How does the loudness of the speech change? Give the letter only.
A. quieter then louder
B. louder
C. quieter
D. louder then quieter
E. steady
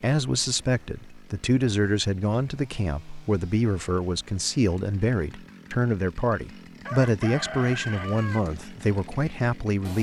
E.